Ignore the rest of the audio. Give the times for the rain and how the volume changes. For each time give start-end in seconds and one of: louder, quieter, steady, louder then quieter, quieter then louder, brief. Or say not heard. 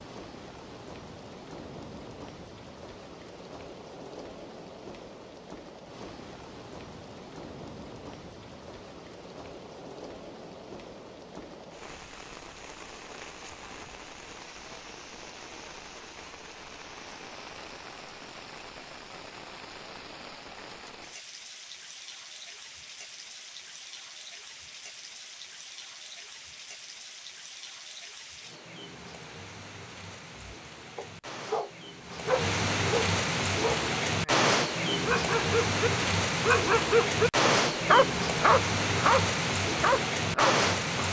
0.0-41.0 louder.